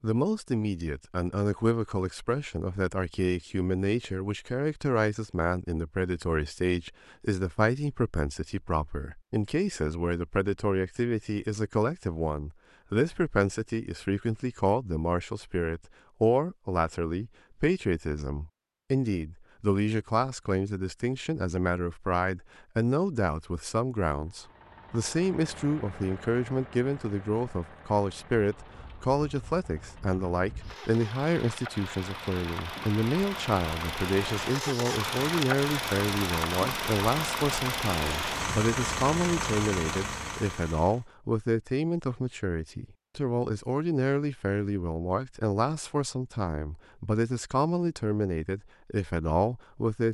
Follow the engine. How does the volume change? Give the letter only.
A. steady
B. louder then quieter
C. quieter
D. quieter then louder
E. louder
E.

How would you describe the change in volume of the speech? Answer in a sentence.
The volume of the speech stays about the same.